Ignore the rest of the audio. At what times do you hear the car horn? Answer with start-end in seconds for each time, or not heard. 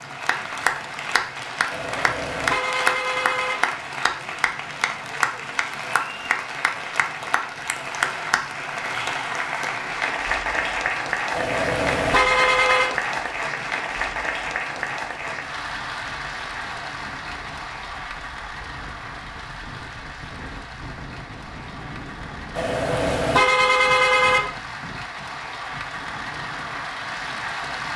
1.7-3.5, 11.3-12.9, 22.6-24.4.